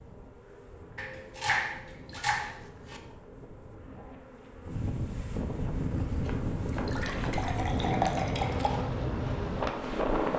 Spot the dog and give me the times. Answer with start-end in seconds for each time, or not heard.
not heard.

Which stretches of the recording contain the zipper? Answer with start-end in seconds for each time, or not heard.
not heard.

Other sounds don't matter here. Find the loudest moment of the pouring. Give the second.
8 s.